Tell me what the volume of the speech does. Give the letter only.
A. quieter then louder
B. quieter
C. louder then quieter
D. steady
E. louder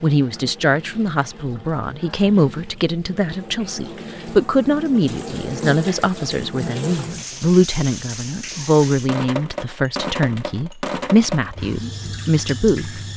D.